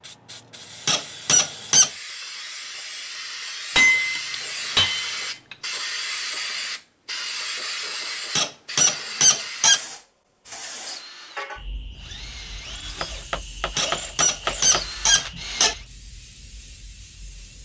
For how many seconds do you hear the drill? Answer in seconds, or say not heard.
5 s.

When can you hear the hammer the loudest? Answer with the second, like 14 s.
4 s.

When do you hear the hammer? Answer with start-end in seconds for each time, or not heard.
3.8-5.5, 13.0-14.8.